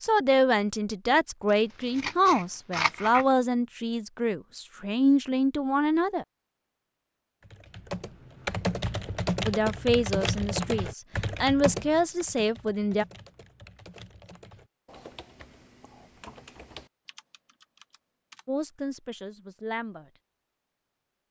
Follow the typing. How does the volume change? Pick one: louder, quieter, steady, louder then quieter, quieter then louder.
quieter.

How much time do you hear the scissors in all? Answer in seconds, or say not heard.
2 s.